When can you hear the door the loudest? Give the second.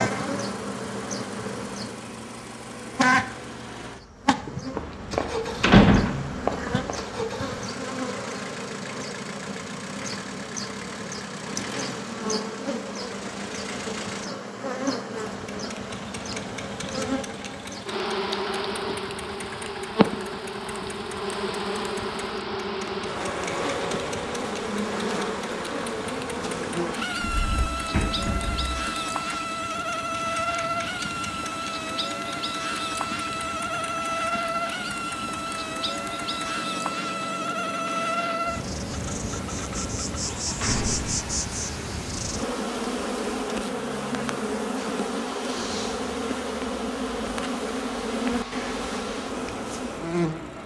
6 s.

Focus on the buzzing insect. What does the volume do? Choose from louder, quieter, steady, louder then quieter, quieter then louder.
steady.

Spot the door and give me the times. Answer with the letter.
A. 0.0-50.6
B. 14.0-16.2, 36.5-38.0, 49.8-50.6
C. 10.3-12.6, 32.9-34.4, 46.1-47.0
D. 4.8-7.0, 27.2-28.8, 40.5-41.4
D.